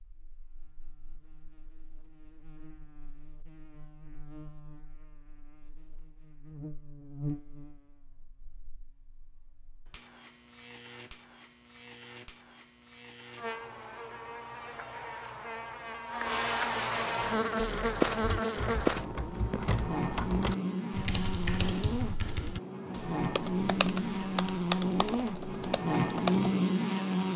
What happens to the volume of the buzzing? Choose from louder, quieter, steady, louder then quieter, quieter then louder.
louder.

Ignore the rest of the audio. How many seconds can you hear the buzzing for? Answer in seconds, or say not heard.
27 s.